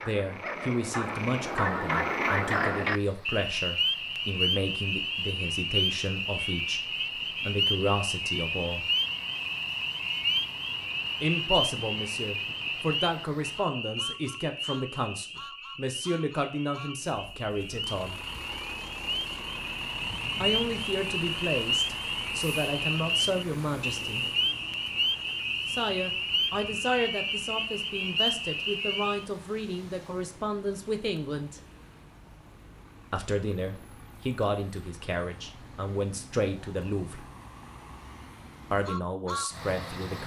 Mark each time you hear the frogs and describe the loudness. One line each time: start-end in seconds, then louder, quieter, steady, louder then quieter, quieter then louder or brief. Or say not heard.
0.0-29.2 quieter then louder.